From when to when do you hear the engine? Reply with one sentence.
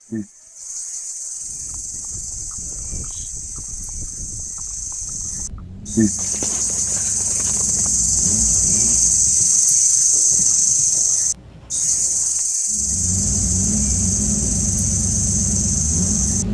You can hear the engine from 5.2 to 9.8 s and from 12.7 to 16.4 s.